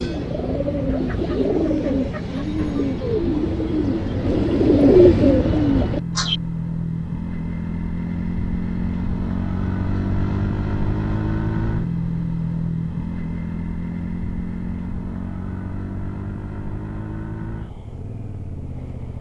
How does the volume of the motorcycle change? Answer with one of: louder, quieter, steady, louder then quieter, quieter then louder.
louder then quieter.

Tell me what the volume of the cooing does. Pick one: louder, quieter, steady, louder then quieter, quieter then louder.
louder.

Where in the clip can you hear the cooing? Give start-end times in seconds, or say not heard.
0.0-6.4.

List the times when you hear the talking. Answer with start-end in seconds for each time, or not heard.
not heard.